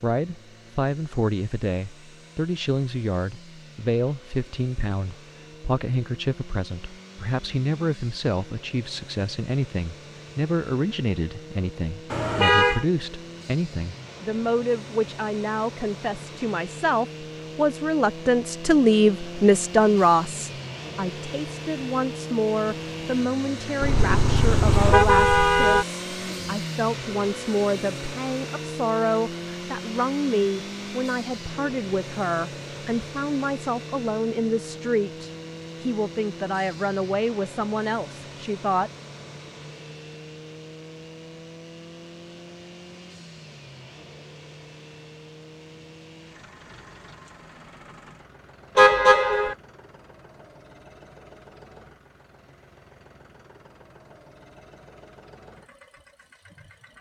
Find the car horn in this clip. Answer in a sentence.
The car horn can be heard from 12.1 to 12.8 s, from 23.8 to 25.9 s and from 48.8 to 49.5 s.